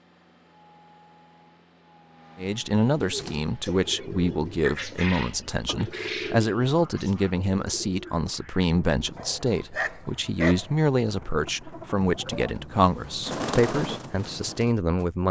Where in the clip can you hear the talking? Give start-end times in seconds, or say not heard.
2.4-15.2.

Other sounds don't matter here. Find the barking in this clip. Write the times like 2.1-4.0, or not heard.
9.2-10.7.